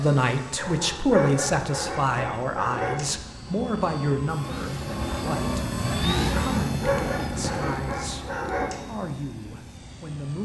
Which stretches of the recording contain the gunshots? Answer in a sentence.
You can't hear the gunshots here.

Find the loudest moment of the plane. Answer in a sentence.
The loudest moment of the plane is at 6 seconds.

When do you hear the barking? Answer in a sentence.
The barking can be heard from 0.6 to 3.1 s and from 6.2 to 8.8 s.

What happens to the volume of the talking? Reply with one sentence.
The volume of the talking goes down.